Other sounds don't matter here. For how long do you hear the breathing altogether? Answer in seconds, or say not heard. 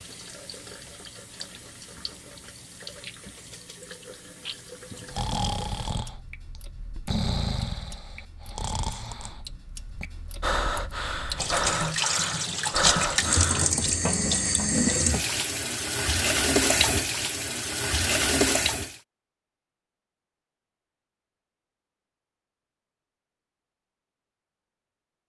9 s.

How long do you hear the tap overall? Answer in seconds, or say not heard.
19 s.